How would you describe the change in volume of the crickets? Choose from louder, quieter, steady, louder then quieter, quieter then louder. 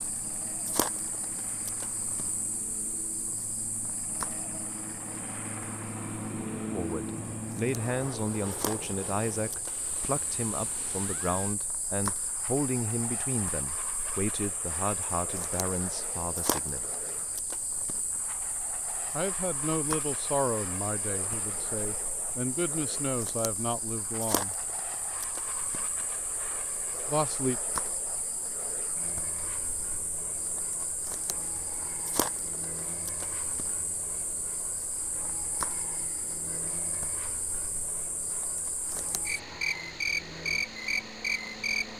louder.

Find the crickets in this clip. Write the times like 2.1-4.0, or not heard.
0.0-41.9.